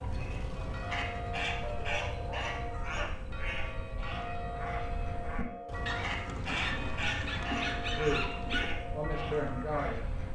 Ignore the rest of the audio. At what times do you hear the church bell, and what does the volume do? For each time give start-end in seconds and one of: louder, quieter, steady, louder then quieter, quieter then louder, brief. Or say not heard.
0.5-9.7 steady.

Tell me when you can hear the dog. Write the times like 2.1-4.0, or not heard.
1.6-3.1, 5.8-8.8.